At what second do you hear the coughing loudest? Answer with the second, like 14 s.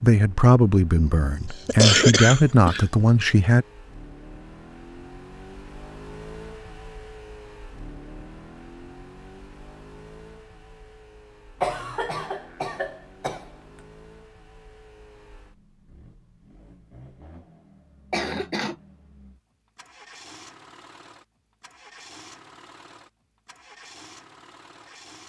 2 s.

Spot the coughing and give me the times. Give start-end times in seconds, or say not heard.
0.9-3.0, 11.6-13.5, 18.1-18.8.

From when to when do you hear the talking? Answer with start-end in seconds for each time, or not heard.
0.0-3.6.